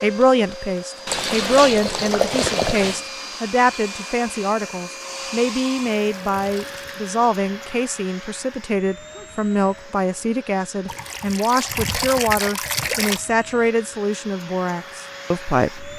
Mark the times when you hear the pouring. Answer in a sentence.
You can hear the pouring from 1.1 to 3.0 s, from 5.5 to 7.0 s and from 10.8 to 13.2 s.